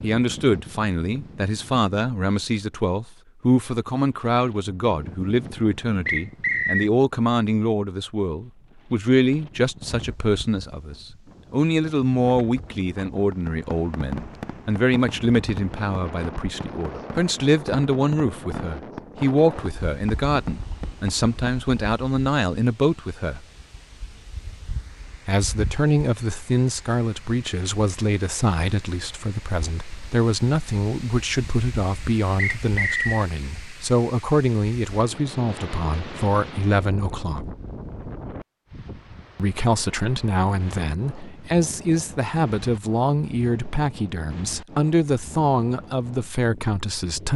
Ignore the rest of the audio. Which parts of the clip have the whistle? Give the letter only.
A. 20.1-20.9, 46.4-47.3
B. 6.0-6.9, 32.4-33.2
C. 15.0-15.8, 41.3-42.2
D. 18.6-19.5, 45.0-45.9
B.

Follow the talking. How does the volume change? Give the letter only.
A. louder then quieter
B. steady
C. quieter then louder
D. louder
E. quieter
B.